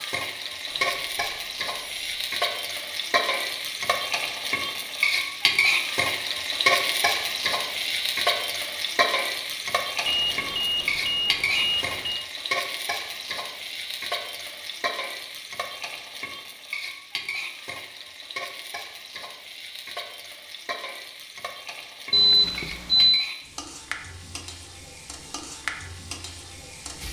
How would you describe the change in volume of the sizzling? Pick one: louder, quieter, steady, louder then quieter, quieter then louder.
quieter.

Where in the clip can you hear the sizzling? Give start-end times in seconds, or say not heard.
0.0-27.0.